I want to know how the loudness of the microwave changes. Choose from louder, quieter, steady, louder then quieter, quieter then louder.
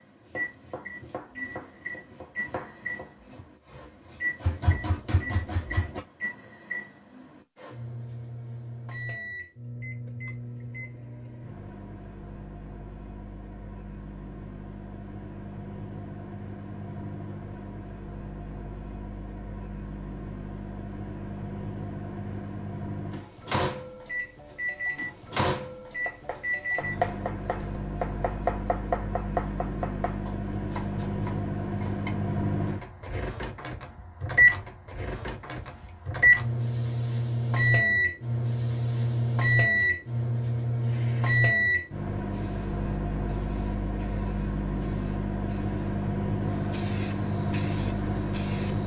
louder.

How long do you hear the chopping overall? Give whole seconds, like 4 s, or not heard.
12 s.